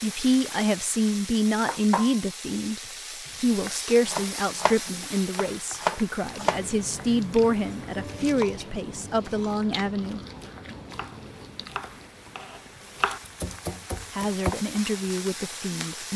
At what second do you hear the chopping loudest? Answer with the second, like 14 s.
6 s.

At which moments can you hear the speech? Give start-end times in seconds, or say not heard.
0.0-2.8, 3.4-10.8, 14.1-16.1.